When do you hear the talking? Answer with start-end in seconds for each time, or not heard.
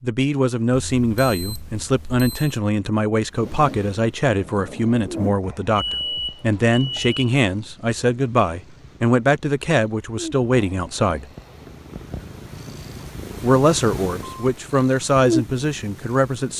0.0-11.3, 13.4-16.5.